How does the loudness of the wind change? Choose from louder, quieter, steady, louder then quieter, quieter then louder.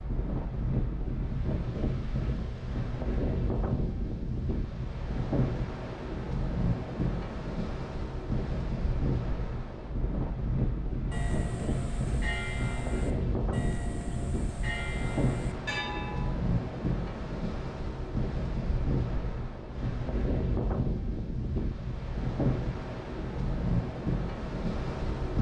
steady.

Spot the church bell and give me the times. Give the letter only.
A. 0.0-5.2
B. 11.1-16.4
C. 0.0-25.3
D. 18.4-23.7
B.